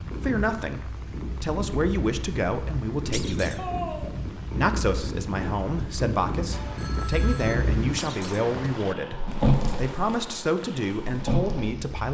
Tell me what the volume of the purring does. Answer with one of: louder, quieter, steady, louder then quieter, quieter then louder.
louder.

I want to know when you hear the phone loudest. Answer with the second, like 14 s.
4 s.